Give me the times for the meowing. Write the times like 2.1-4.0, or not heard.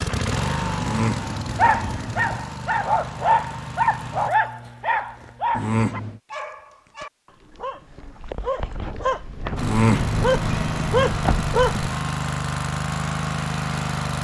0.8-2.4, 5.5-6.2, 9.6-11.2.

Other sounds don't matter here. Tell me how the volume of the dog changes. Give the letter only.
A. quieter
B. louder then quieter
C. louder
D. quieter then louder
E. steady
D.